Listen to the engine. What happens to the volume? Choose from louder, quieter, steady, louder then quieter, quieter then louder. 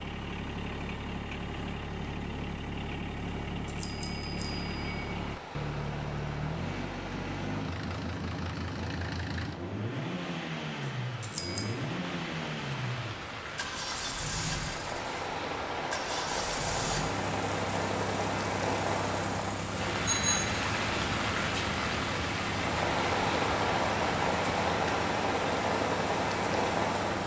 steady.